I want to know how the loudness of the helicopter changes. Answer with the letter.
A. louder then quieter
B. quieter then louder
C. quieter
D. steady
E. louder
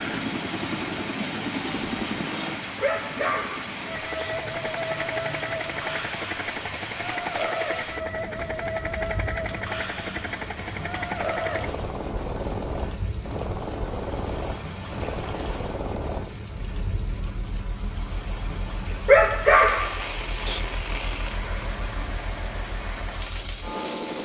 C.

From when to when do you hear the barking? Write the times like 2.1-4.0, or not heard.
2.8-4.3, 19.1-20.6.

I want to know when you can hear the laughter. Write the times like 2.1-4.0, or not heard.
not heard.